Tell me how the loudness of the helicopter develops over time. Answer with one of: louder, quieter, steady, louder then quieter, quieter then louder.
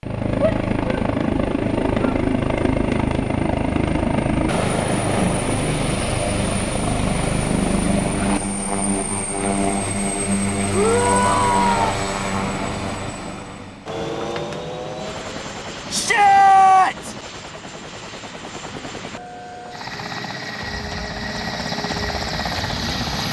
quieter.